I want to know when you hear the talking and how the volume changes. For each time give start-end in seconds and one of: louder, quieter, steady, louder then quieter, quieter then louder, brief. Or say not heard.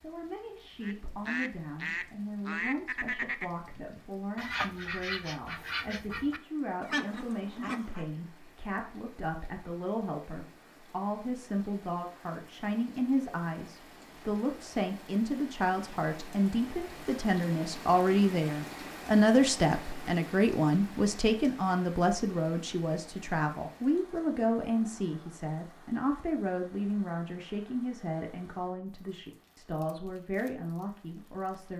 0.0-31.7 louder then quieter.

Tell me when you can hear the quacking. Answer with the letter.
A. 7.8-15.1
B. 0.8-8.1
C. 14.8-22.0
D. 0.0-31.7
B.